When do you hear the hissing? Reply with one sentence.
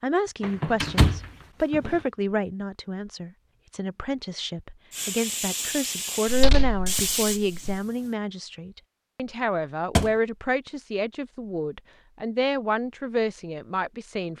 You can hear the hissing from 4.9 to 8.2 s.